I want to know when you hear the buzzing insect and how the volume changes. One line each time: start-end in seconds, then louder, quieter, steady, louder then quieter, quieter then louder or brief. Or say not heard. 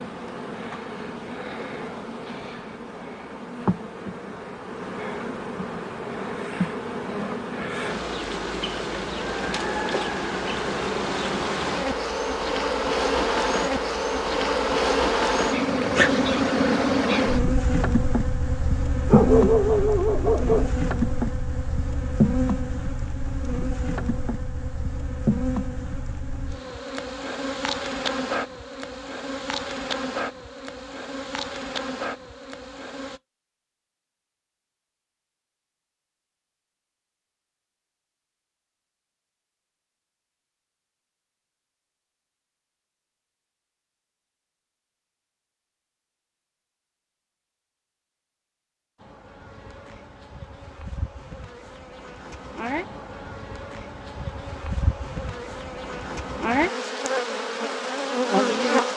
0.0-33.2 louder then quieter
49.0-58.9 louder.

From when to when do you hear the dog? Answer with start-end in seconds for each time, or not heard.
19.1-20.7.